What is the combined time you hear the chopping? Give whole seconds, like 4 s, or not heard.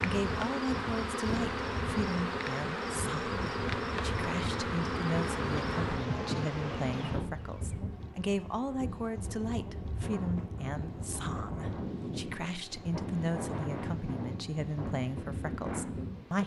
not heard.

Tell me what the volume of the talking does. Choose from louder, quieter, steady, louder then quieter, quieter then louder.
steady.